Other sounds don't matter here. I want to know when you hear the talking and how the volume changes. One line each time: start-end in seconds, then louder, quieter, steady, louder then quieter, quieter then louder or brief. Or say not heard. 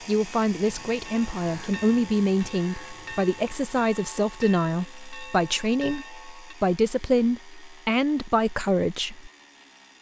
0.1-9.3 steady.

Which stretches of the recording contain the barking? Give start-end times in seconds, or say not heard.
not heard.